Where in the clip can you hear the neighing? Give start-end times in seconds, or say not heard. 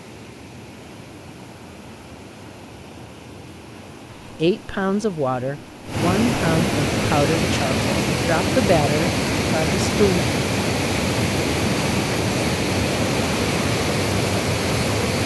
not heard.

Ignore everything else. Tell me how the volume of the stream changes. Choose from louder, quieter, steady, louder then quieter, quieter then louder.
louder.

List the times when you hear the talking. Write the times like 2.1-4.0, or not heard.
4.3-10.2.